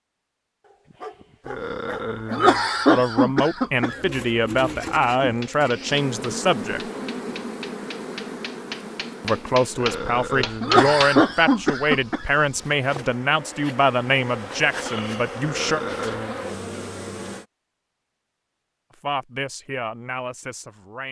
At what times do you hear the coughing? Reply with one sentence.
The coughing can be heard from 1.4 to 4.1 s, from 9.8 to 12.2 s and from 15.4 to 16.4 s.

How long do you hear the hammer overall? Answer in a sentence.
The hammer can be heard for 6 seconds in total.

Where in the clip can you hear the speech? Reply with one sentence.
You can hear the speech from 2.9 to 6.8 s, from 9.2 to 15.8 s and from 19.0 to 21.0 s.